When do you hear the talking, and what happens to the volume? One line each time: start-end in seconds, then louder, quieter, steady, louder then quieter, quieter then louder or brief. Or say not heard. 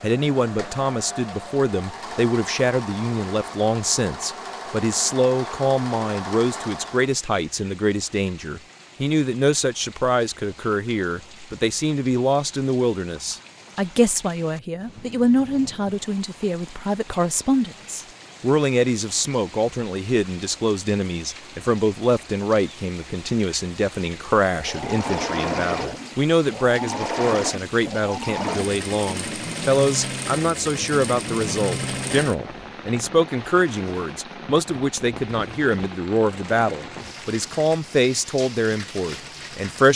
0.0-39.9 steady.